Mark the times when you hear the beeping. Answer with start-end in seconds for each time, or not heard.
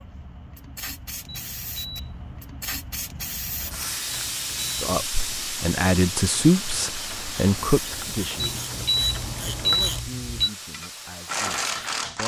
1.2-2.4, 4.1-4.8, 8.4-10.5.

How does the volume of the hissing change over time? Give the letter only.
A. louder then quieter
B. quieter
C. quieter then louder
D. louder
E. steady
A.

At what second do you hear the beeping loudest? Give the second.
10 s.